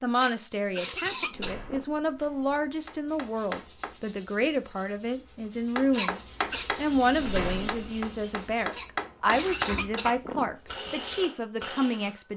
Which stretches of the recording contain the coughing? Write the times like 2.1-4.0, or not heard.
0.1-1.9, 5.9-6.7, 8.7-10.6.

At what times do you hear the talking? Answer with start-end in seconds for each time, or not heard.
0.0-12.3.